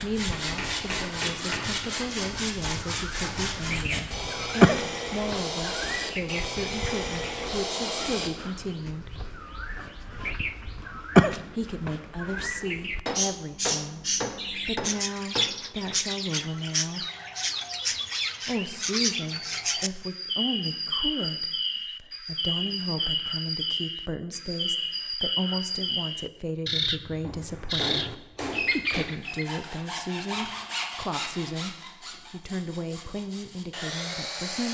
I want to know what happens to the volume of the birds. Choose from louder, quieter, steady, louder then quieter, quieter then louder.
steady.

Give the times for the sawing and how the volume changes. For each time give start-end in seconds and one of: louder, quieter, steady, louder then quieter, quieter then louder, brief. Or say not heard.
0.0-8.7 steady
29.2-34.6 quieter then louder.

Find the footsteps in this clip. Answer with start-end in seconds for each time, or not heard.
not heard.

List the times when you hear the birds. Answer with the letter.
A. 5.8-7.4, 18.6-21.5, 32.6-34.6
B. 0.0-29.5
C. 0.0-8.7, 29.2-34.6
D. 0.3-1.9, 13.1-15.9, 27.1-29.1
B.